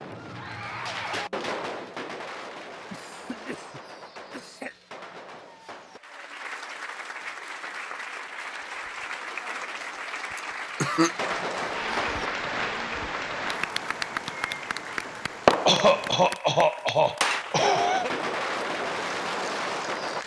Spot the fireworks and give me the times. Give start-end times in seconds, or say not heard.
0.0-6.0, 10.8-20.2.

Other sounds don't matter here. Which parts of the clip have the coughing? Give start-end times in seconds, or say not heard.
2.9-4.8, 10.3-11.1, 15.7-18.1.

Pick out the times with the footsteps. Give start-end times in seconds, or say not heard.
not heard.